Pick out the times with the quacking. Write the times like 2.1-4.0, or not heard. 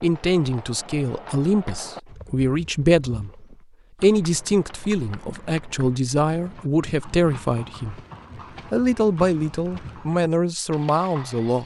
not heard.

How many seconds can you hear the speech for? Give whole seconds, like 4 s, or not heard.
11 s.